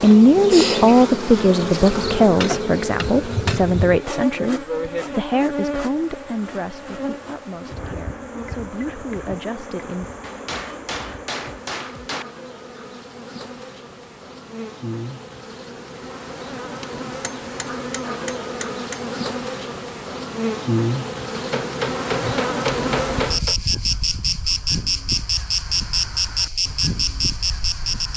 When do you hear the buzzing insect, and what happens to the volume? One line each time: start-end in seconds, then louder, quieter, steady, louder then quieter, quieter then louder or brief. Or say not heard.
0.0-28.1 quieter then louder.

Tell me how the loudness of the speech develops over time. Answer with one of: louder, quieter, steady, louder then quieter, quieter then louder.
quieter.